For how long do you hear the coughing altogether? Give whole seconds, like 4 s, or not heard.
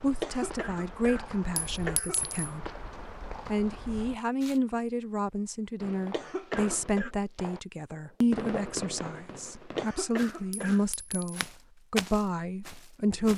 4 s.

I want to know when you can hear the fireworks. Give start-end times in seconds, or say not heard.
5.8-9.8.